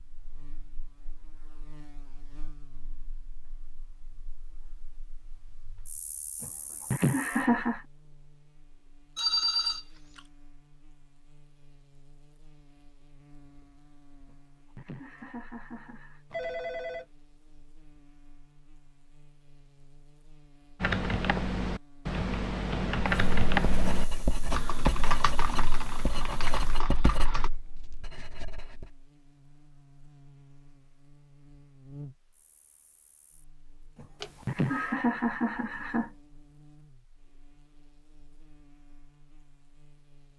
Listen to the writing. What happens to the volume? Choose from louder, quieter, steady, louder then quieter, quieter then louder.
quieter.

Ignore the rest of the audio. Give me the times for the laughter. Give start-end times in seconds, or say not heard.
6.4-7.8, 14.2-16.2, 34.0-36.1.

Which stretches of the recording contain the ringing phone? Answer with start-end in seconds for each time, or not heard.
9.2-10.2, 16.3-17.1, 34.2-35.0.